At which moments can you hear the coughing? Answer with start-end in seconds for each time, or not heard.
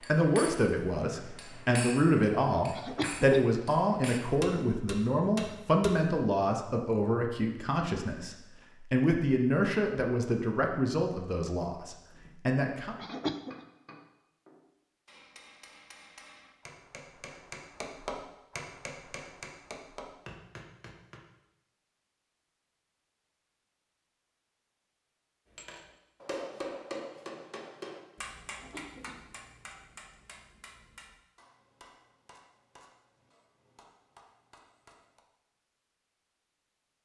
2.7-3.5, 12.9-13.6, 28.4-29.2.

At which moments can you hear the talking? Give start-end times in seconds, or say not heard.
0.1-12.9.